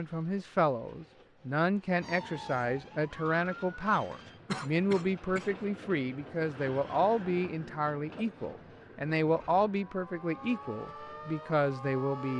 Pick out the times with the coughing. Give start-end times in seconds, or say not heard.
4.5-5.5.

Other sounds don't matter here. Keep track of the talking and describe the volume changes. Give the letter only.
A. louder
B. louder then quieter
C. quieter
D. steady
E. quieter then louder
D.